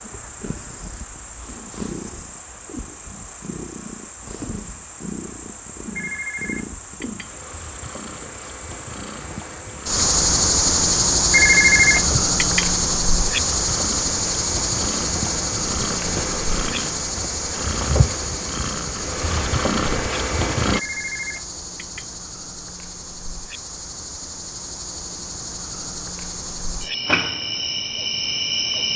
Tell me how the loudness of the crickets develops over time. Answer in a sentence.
The loudness of the crickets goes up, then down.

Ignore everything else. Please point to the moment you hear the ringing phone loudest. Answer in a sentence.
The volume of the ringing phone peaks at 12 seconds.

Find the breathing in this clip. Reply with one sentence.
The breathing can't be heard in this clip.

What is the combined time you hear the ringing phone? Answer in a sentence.
You can hear the ringing phone for 4 seconds altogether.